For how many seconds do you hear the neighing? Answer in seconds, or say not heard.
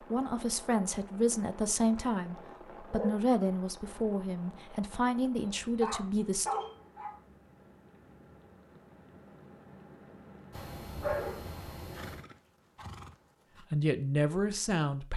2 s.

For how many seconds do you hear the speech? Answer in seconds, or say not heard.
8 s.